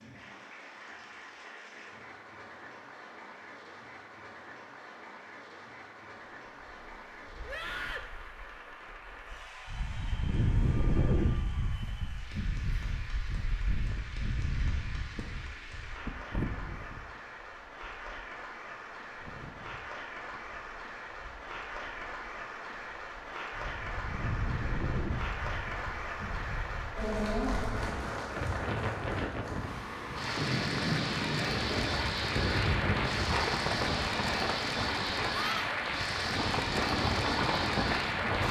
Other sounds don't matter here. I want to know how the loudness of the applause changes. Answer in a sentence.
The loudness of the applause goes up.